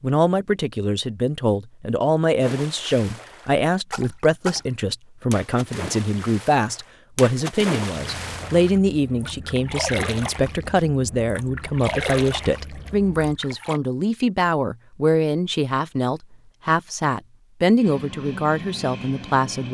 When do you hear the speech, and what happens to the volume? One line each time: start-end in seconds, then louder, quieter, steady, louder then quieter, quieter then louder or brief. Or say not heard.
0.0-19.6 steady.